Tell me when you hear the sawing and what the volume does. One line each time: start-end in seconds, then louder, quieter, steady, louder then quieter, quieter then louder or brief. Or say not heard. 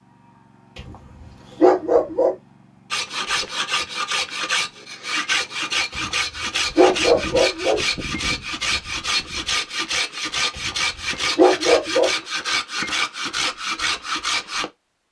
2.9-14.7 steady.